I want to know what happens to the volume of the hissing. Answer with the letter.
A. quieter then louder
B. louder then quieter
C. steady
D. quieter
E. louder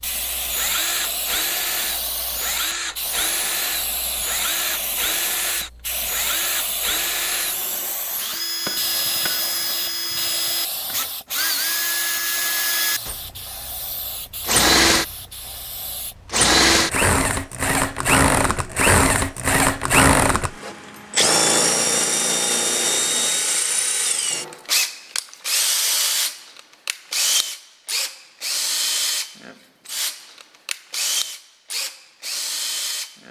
D.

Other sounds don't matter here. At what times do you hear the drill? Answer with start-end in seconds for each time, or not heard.
0.0-15.2, 16.2-33.2.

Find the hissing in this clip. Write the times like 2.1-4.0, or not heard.
0.0-16.1.